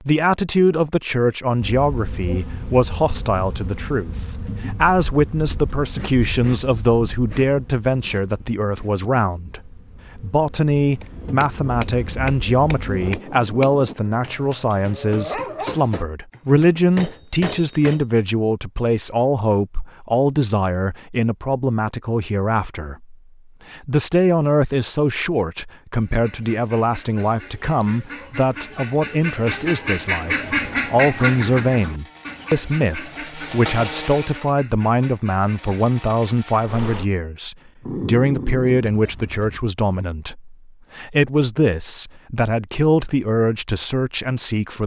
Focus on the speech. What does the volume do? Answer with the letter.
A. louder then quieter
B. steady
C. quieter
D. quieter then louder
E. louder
B.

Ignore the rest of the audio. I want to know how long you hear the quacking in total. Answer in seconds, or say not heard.
10 s.